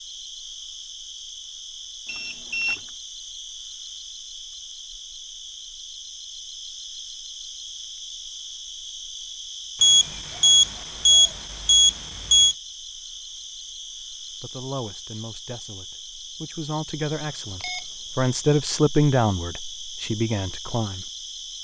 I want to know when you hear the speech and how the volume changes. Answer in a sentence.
The speech can be heard from 14.2 to 21.1 s, getting louder then quieter.